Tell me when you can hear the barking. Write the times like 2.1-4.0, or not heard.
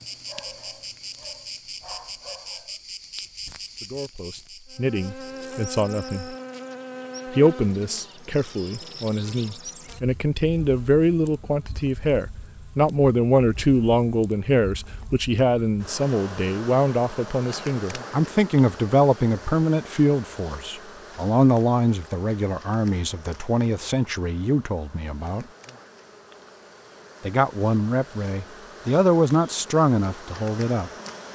0.0-2.8.